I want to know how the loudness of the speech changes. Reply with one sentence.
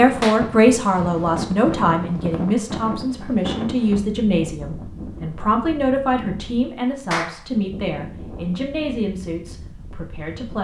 The loudness of the speech goes down.